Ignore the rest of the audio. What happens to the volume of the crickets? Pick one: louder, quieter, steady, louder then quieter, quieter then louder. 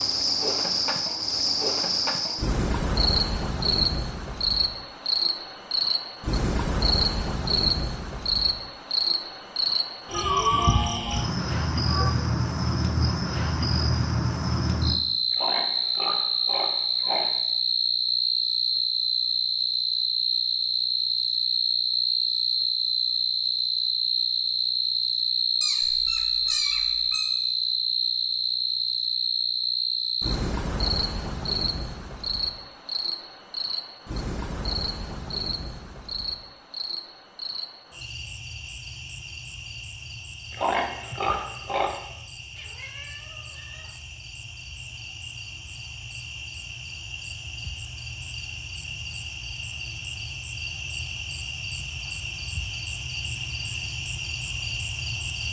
quieter.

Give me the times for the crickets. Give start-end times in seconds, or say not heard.
0.0-55.4.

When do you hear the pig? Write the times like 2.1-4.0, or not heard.
15.3-17.3, 40.5-42.0.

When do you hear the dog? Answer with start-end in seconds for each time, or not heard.
not heard.